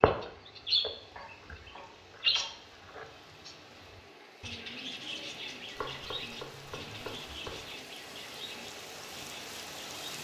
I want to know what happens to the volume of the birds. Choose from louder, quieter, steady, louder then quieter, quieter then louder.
quieter.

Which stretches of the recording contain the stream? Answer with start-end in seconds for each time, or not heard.
0.0-10.1.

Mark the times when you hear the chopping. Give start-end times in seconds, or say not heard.
1.1-3.1, 5.8-7.7.